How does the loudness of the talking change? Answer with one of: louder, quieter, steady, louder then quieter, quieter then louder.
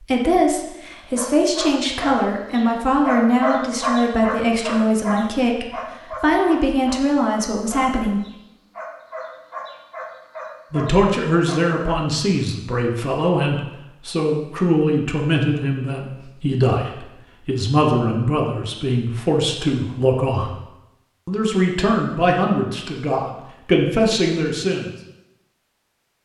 steady.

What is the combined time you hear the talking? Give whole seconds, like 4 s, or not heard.
22 s.